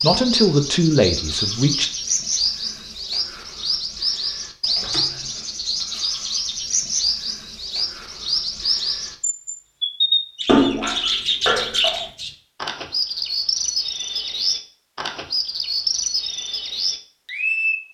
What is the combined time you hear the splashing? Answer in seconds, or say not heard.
2 s.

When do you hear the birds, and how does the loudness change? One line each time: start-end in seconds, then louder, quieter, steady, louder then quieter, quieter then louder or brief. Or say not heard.
0.0-17.8 steady.